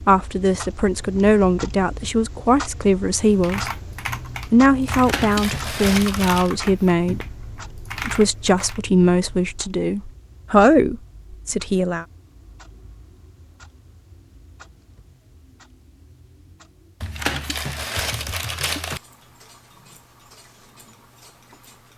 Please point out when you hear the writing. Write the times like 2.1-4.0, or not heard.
not heard.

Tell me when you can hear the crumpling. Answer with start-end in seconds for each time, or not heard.
4.8-6.5, 17.0-19.0.